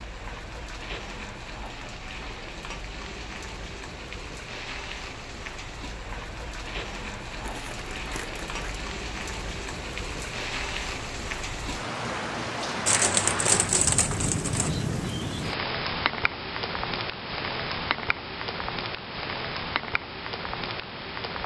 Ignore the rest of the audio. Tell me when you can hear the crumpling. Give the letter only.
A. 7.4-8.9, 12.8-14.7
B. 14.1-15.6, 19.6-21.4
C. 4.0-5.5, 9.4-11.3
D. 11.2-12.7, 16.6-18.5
A.